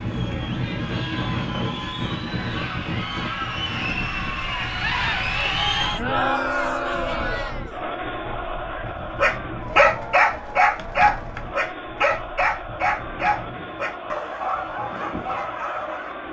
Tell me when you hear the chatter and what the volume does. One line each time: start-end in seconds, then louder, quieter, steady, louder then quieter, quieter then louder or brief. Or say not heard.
0.0-16.2 louder then quieter.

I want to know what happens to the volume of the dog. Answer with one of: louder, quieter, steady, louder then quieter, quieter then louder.
quieter.